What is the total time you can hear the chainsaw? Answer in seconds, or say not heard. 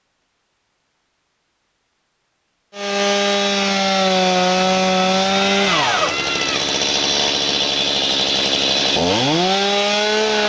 8 s.